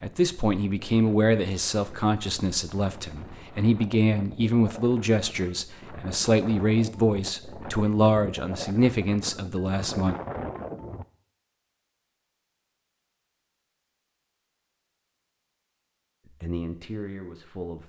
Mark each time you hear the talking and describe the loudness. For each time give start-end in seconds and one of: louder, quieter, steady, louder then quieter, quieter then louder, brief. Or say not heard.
0.0-10.2 steady
16.4-17.8 brief.